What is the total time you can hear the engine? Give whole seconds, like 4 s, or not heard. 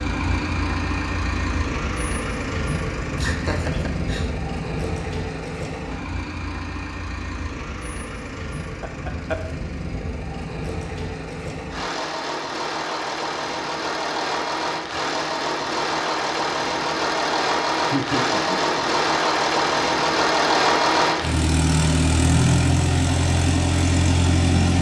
25 s.